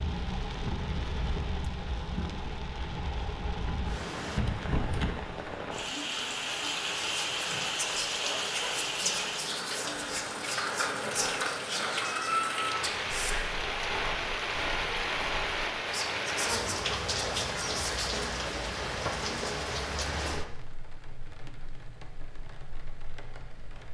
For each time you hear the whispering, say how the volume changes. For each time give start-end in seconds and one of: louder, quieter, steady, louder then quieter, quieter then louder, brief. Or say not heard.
7.2-18.2 steady.